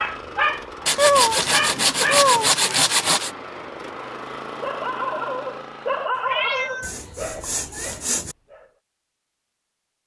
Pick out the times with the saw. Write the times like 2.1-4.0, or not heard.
0.8-3.3, 6.8-8.3.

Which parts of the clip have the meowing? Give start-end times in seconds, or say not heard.
0.9-2.5, 6.2-8.0.